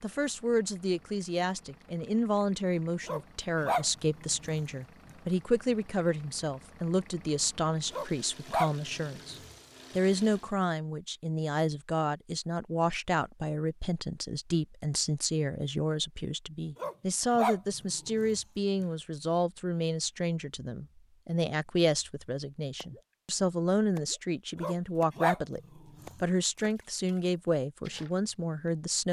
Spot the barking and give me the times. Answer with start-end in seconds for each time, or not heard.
3.0-5.2, 7.9-10.0, 16.8-18.9, 24.6-26.2.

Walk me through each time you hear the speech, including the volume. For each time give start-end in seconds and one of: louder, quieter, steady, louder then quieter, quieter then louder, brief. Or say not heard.
0.0-25.6 steady
26.2-29.0 brief.